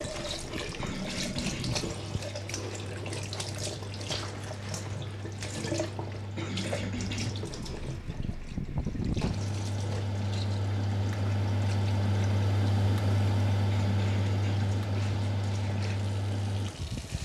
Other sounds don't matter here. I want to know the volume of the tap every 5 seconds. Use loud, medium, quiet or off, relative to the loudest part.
loud, loud, medium, medium.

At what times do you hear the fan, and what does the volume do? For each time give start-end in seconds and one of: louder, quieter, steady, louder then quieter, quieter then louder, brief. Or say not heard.
0.0-17.1 louder.